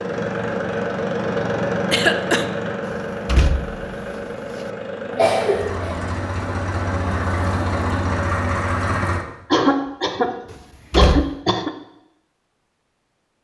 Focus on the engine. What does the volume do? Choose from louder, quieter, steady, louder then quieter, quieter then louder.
quieter then louder.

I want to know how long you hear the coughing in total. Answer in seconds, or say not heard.
4 s.